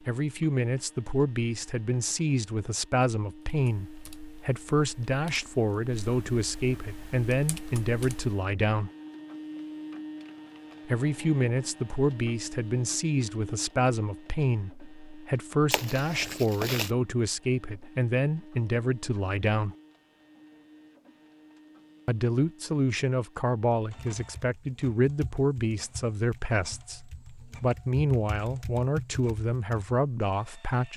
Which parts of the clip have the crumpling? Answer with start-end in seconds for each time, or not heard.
15.7-16.9.